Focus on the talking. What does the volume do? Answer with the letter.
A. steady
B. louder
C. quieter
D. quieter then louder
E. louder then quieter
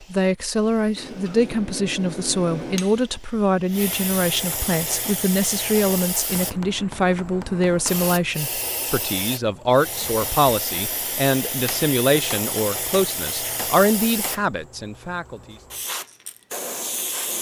A.